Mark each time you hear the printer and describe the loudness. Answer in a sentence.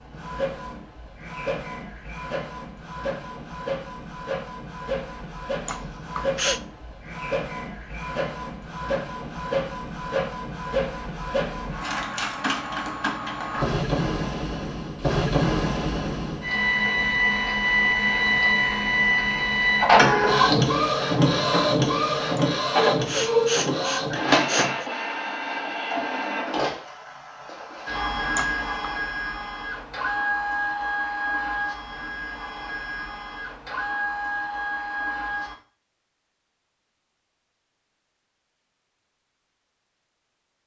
You can hear the printer from 0.0 to 35.5 s, getting louder then quieter.